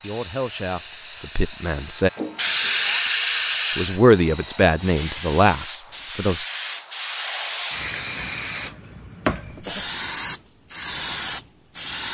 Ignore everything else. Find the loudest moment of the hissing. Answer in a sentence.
The loudest moment of the hissing is at 3 seconds.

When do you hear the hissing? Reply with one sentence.
You can hear the hissing from 0.0 to 12.0 s.